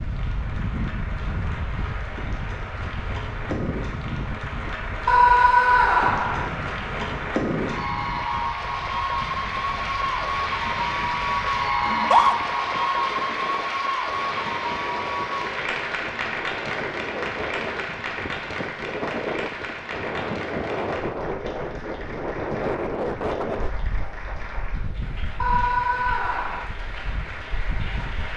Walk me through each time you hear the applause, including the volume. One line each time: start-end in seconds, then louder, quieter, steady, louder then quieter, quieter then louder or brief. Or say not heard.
0.0-28.3 louder then quieter.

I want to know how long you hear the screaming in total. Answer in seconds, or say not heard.
3 s.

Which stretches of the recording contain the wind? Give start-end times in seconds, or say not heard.
0.0-28.3.